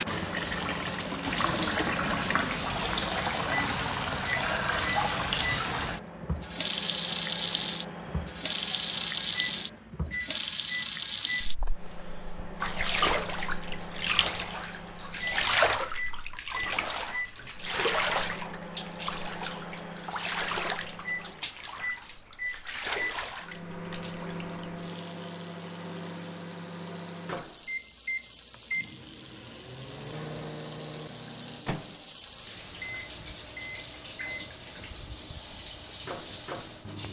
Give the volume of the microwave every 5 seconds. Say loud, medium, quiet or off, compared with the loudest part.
loud, loud, loud, loud, loud, loud, loud, medium.